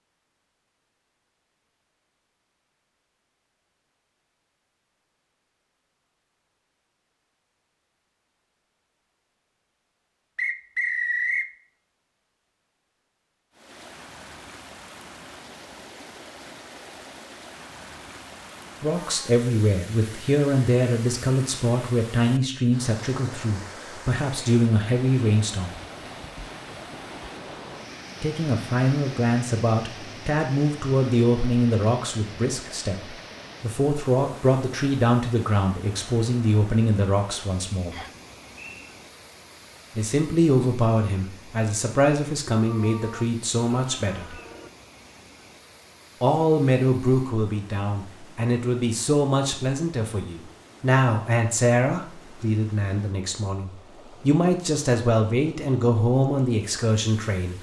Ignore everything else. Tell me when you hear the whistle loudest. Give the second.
11 s.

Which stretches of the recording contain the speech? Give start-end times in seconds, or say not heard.
18.8-25.8, 28.2-38.0, 40.0-44.4, 46.2-57.5.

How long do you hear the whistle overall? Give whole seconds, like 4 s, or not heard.
2 s.